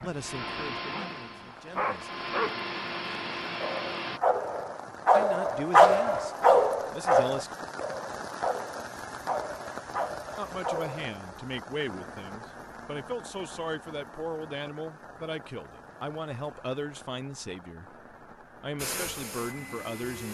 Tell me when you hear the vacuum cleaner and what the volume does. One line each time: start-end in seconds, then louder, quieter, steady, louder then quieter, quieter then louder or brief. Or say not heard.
0.0-4.2 quieter then louder
18.8-20.2 brief.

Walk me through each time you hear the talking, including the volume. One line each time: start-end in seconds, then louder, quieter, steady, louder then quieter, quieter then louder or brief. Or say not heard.
0.0-2.1 brief
5.1-7.5 brief
10.3-20.2 steady.